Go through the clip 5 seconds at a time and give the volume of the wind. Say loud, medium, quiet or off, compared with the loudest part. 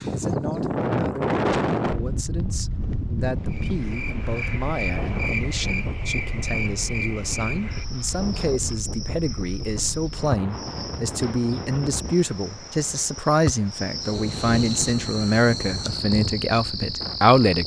loud, medium, medium, medium.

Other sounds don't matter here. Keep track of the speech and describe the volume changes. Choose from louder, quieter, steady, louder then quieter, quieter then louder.
louder.